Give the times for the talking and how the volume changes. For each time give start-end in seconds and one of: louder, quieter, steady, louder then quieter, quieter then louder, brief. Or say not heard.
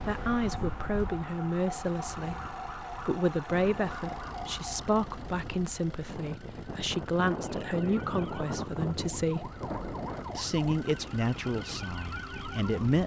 0.0-9.5 steady
10.3-13.0 brief.